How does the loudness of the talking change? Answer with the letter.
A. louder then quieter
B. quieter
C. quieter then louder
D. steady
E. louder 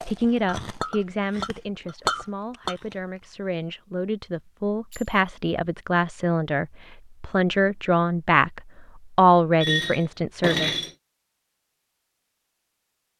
E.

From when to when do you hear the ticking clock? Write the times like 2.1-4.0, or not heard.
not heard.